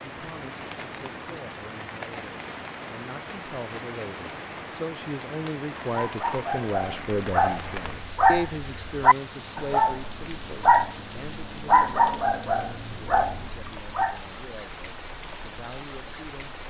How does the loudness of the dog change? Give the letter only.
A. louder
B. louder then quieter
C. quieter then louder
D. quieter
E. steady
B.